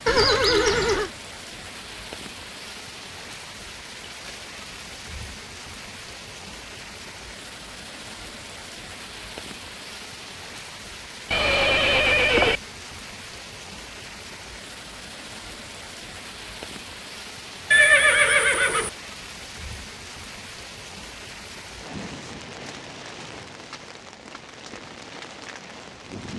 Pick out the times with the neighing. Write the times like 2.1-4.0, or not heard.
0.1-1.1, 11.3-12.6, 17.7-18.9.